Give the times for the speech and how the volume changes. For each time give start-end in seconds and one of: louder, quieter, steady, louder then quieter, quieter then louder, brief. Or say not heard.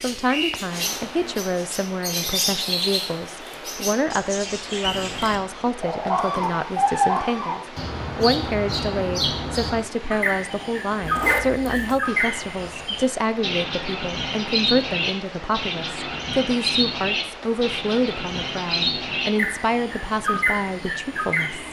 0.0-21.6 steady.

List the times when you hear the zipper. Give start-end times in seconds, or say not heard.
11.0-12.0.